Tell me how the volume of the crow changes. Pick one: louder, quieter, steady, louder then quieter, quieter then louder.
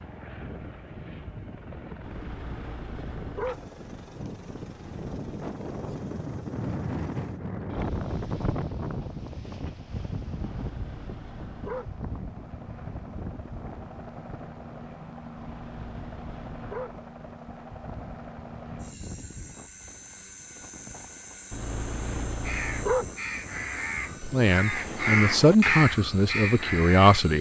louder then quieter.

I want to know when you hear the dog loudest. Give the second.
23 s.